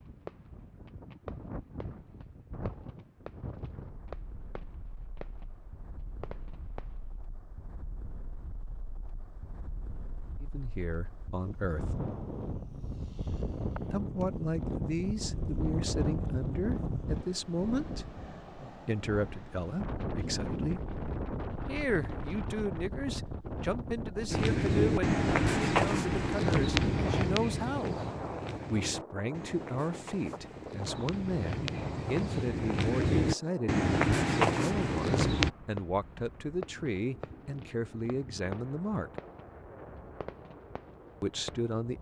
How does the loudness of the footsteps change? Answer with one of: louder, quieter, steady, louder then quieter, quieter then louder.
quieter then louder.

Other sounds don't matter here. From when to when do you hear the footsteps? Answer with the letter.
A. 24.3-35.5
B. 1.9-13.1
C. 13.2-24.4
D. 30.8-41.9
A.